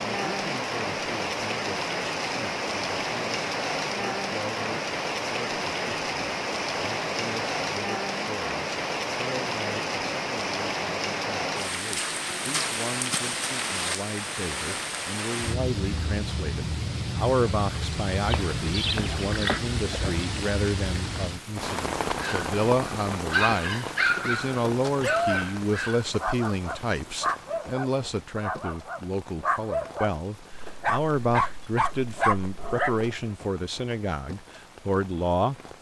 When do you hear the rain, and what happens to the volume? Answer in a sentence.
The rain can be heard from 0.0 to 35.7 s, getting quieter.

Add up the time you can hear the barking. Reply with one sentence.
You can hear the barking for 11 seconds altogether.